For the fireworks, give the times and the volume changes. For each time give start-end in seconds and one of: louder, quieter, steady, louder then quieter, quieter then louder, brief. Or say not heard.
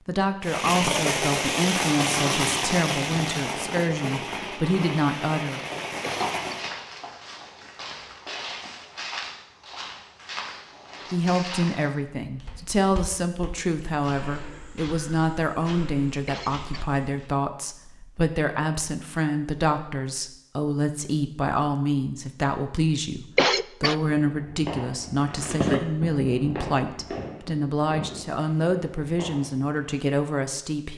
0.4-6.7 quieter
24.1-29.8 louder then quieter.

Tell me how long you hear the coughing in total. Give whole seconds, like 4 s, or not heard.
2 s.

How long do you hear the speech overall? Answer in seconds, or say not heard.
25 s.